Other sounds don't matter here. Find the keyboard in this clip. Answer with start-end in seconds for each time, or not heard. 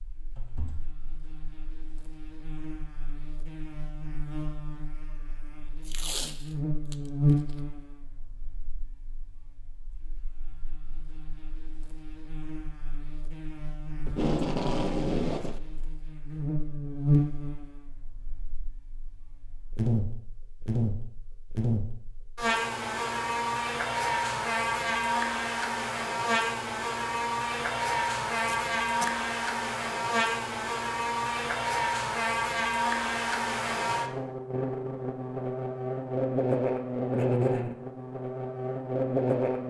0.3-0.9.